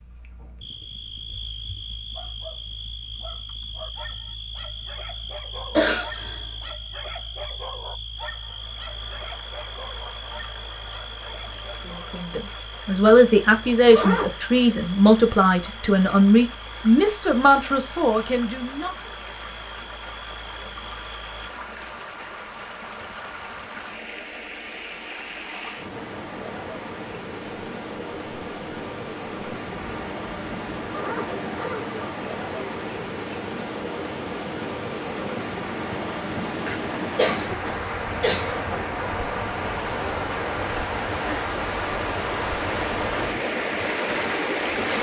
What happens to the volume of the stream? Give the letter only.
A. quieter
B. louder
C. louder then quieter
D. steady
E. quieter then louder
B.